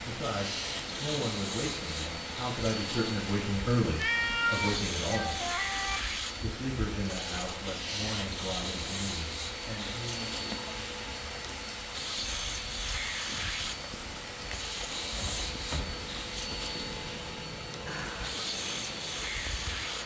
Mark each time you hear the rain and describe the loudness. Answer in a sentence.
The rain can be heard from 0.0 to 20.0 s, at a steady volume.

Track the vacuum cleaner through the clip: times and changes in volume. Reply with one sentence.
You can hear the vacuum cleaner from 0.1 to 20.0 s, at a steady volume.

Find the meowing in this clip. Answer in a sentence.
The meowing can be heard from 4.0 to 6.0 s and from 15.1 to 15.9 s.